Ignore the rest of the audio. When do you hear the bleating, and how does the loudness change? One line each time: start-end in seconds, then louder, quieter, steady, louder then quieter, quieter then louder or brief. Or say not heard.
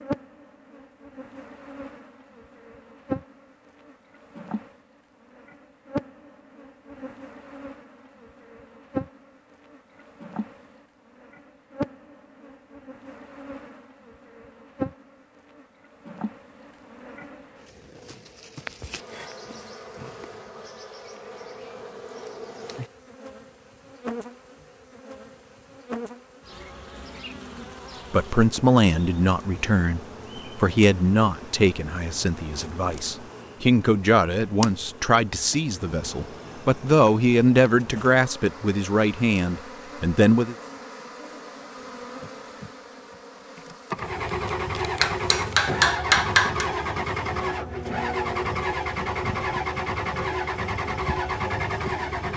not heard.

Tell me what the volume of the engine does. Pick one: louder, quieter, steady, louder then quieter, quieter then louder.
steady.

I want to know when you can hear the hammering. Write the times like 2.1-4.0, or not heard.
45.0-46.6.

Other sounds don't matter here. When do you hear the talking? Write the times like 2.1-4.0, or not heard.
28.1-40.5.